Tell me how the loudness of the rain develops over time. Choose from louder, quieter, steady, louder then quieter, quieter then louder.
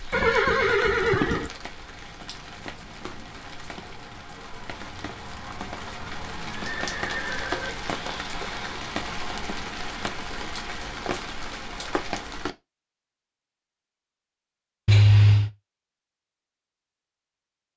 louder.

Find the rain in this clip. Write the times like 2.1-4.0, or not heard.
0.0-12.6.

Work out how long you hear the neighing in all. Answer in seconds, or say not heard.
4 s.